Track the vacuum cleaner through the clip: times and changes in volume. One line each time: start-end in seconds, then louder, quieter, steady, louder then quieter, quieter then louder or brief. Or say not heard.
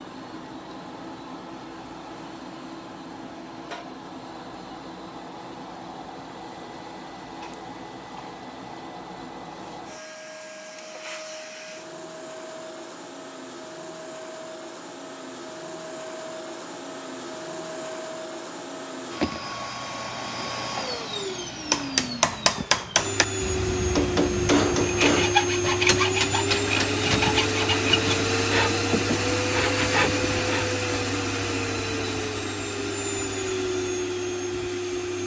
0.0-35.2 louder.